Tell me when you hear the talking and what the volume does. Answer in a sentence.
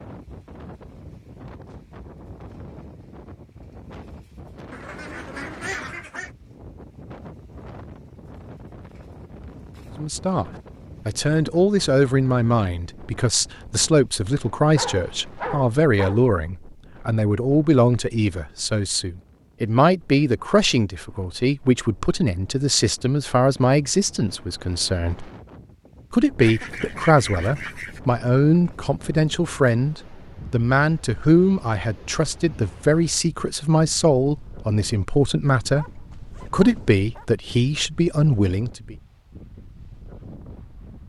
You can hear the talking from 9.9 to 25.3 s, at a steady volume; and from 26.1 to 39.0 s, at a steady volume.